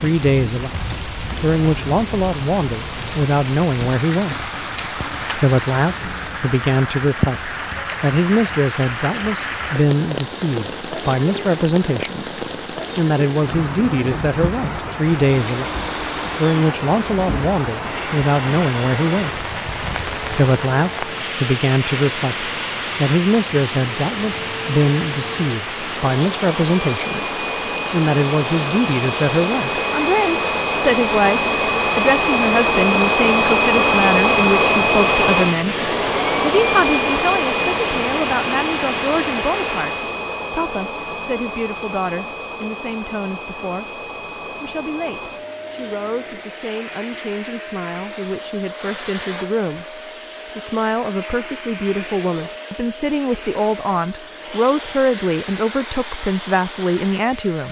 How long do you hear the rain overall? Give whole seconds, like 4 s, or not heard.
40 s.